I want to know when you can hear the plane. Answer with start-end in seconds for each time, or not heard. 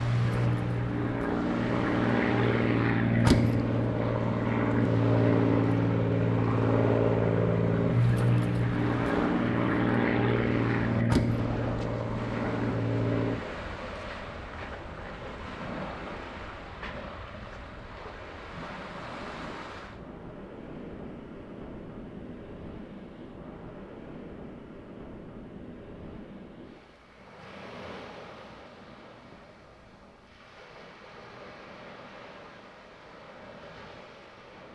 0.0-13.4.